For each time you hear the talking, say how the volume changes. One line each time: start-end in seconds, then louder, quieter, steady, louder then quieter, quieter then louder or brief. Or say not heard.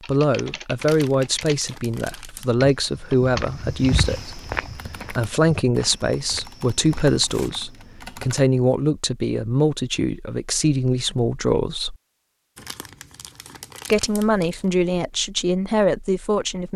0.1-11.9 steady
13.9-16.7 brief.